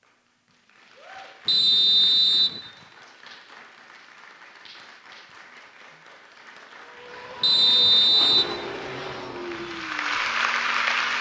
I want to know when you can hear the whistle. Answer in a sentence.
You can hear the whistle from 1.4 to 2.6 s and from 7.4 to 8.6 s.